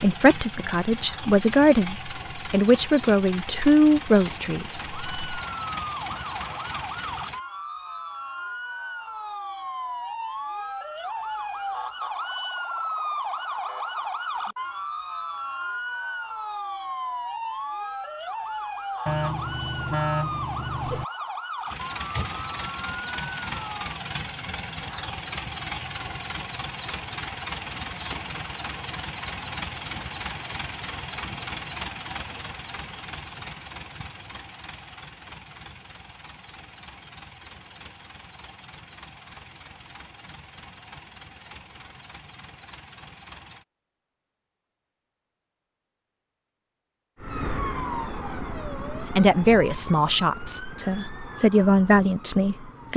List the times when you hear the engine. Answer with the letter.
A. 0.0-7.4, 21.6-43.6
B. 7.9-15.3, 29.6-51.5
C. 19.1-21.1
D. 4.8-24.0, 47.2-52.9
A.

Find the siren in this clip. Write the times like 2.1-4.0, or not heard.
4.8-24.0, 47.2-52.9.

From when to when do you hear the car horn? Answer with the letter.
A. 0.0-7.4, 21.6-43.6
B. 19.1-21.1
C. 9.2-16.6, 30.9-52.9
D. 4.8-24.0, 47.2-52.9
B.